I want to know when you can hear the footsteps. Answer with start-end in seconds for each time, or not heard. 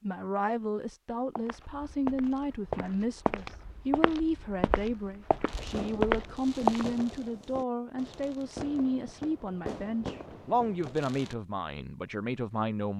1.4-7.0.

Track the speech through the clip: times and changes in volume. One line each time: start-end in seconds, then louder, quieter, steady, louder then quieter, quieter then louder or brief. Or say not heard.
0.0-12.9 steady.